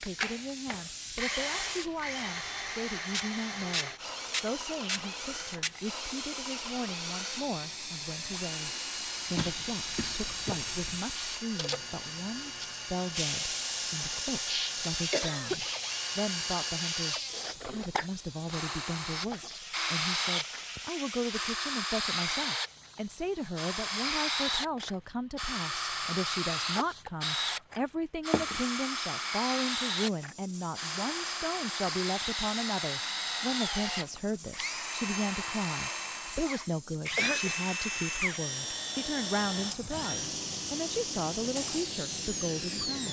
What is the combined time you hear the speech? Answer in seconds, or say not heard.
43 s.